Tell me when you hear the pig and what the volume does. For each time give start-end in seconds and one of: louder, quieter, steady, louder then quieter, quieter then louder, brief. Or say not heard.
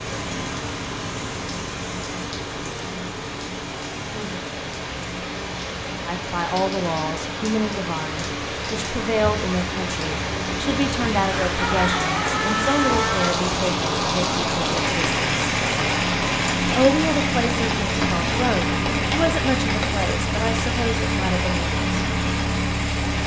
not heard.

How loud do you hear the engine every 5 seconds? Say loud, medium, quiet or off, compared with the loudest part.
medium, quiet, medium, loud, loud.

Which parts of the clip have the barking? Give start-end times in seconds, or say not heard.
not heard.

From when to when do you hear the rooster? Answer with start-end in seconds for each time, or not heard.
11.4-13.3.